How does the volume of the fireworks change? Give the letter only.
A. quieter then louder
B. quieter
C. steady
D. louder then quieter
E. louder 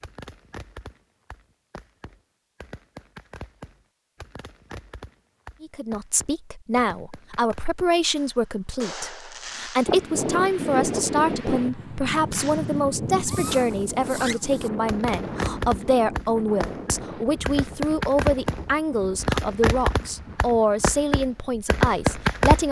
E.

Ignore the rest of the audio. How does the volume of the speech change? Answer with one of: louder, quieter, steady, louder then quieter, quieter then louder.
steady.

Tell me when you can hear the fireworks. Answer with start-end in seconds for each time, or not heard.
0.0-9.9, 12.3-22.6.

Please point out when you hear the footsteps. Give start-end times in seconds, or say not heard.
not heard.